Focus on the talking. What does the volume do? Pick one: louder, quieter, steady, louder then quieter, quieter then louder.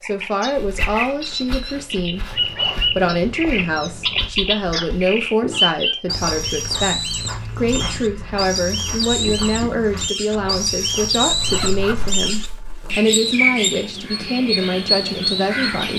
steady.